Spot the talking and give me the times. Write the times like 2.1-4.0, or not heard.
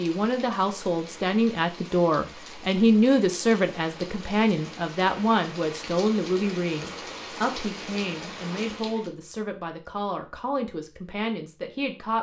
0.0-12.1.